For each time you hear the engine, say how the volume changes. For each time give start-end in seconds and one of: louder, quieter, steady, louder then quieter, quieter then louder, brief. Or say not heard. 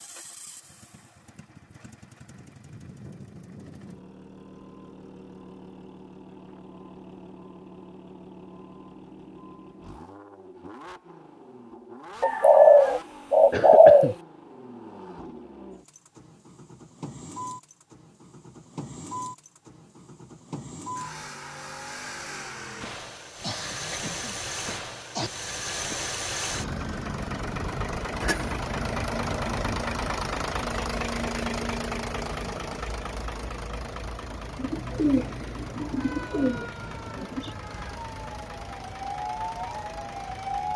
0.0-40.7 louder then quieter.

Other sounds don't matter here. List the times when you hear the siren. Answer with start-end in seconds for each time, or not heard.
35.8-40.7.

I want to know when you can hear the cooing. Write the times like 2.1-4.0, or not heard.
12.2-14.2, 34.5-37.5.